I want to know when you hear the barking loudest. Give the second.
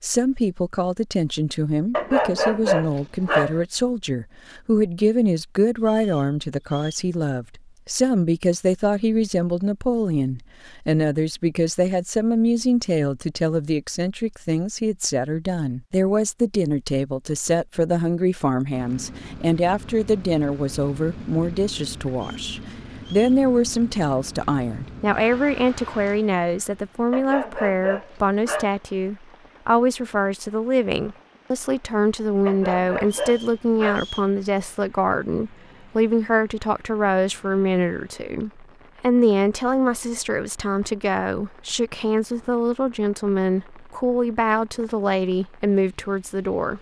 3 s.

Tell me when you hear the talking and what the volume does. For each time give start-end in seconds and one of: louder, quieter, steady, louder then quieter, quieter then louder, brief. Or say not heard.
0.0-46.7 steady.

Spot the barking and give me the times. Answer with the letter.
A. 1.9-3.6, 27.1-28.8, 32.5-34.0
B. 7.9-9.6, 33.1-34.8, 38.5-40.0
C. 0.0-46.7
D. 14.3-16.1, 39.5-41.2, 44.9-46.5
A.